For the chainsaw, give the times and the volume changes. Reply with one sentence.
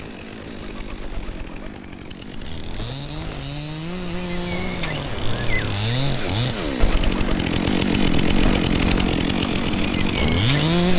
The chainsaw can be heard from 0.0 to 10.9 s, getting louder.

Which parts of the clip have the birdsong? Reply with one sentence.
The birdsong can be heard from 0.0 to 10.9 s.